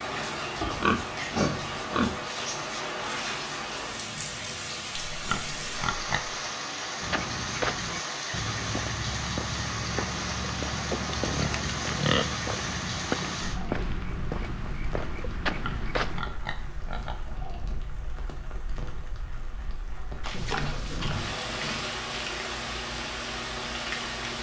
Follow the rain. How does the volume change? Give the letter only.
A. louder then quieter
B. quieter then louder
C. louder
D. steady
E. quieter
B.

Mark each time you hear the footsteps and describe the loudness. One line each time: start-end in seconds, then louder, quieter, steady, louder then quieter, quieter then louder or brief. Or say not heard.
7.0-16.2 steady.